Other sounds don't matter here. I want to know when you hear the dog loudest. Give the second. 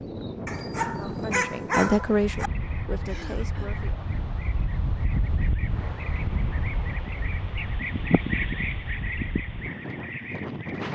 2 s.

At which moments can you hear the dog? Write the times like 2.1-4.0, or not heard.
0.5-2.5.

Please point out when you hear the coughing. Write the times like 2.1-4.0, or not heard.
3.0-3.9.